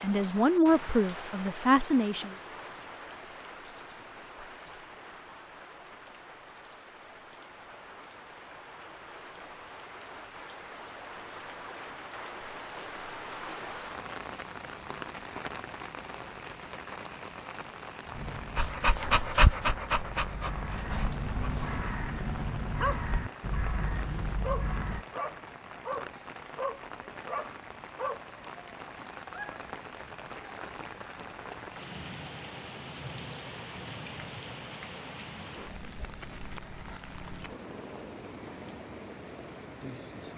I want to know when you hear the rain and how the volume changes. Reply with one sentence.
The rain can be heard from 0.0 to 40.3 s, at a steady volume.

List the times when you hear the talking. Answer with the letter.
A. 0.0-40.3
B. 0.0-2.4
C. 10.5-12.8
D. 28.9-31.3
B.